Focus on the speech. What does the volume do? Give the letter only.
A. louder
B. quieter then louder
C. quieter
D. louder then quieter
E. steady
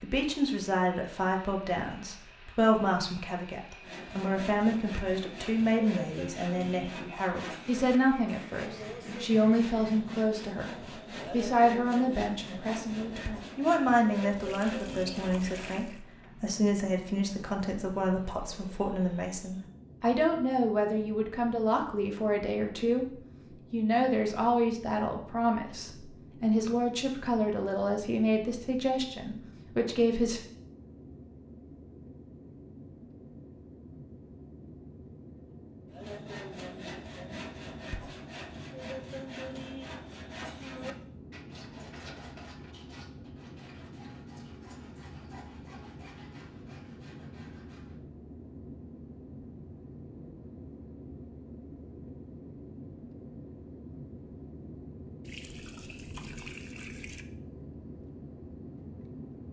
E.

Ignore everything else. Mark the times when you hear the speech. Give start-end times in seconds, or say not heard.
0.0-23.1, 23.7-30.4.